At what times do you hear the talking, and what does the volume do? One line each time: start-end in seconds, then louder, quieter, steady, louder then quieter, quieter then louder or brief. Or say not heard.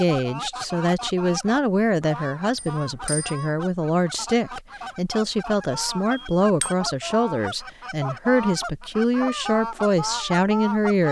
0.0-11.0 steady.